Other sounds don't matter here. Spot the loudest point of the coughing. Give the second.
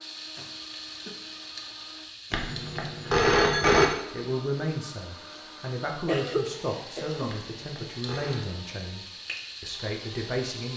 6 s.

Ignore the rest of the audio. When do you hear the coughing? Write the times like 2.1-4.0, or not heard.
0.3-1.2, 5.8-7.4.